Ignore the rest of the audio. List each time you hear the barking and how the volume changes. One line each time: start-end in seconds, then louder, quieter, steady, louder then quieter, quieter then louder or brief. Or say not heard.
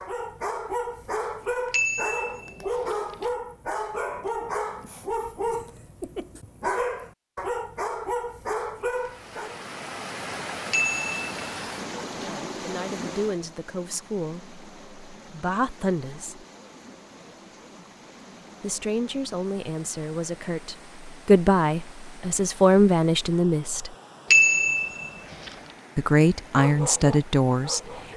0.0-9.7 steady
26.6-28.1 brief.